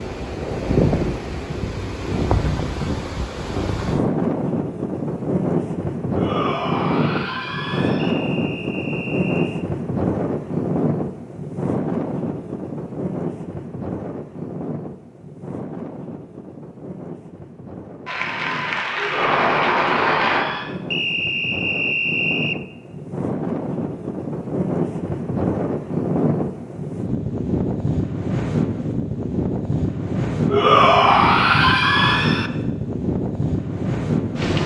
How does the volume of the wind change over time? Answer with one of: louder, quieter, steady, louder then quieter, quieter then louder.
quieter then louder.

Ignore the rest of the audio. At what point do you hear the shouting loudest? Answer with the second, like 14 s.
31 s.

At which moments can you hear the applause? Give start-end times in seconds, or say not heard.
18.1-20.4.